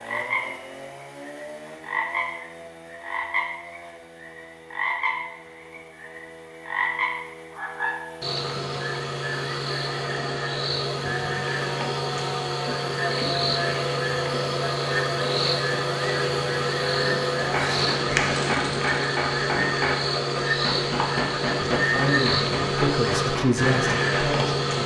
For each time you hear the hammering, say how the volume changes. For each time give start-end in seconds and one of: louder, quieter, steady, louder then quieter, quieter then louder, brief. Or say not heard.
17.4-24.4 steady.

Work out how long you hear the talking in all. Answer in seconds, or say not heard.
3 s.